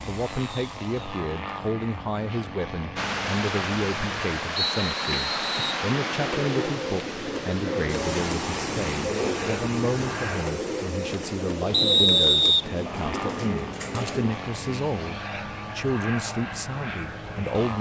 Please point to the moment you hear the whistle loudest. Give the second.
12 s.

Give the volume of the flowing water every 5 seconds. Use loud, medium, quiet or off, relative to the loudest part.
loud, loud, medium, quiet.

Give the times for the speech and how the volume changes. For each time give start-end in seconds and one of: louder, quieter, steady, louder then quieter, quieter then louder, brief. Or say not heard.
0.1-17.7 steady.